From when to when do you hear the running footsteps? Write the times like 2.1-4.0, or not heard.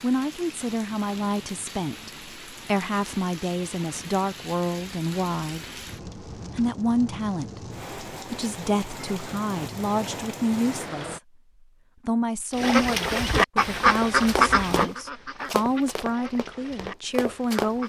13.9-17.7.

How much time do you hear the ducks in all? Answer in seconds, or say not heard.
5 s.